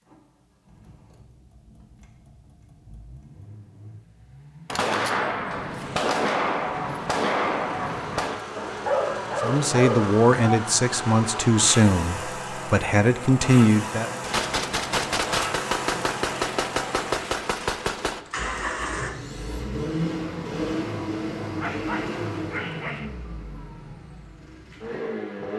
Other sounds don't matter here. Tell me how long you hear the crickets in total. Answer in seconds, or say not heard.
not heard.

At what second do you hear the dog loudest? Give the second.
9 s.